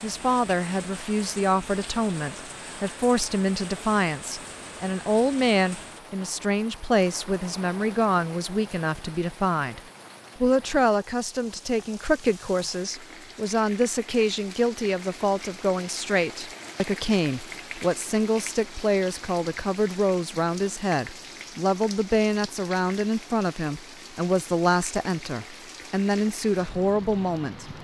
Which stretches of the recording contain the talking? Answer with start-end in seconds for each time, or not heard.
0.0-9.8, 10.4-27.7.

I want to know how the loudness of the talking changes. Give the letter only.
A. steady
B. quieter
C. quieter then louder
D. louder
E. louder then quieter
A.